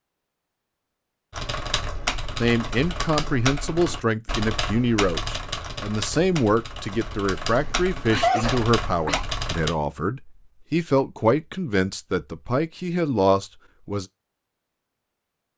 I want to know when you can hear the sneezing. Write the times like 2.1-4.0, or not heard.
7.5-9.2.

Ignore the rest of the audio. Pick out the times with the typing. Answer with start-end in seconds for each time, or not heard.
1.3-9.7.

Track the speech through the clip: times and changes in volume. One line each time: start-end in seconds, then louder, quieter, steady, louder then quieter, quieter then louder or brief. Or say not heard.
2.4-14.1 steady.